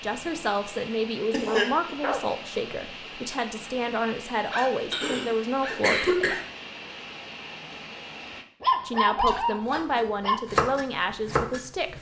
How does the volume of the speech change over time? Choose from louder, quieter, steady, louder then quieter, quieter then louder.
steady.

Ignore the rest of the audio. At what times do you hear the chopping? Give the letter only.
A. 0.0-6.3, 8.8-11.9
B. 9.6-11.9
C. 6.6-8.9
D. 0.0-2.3
B.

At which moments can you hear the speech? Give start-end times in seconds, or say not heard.
0.0-6.3, 8.8-11.9.